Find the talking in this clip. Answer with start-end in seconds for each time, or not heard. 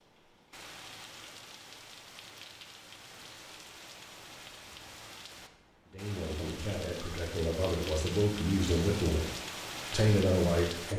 5.9-9.3, 9.9-10.9.